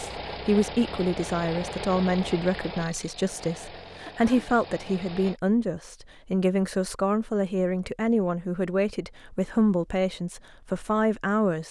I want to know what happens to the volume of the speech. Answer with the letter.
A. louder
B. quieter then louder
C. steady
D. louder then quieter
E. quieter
C.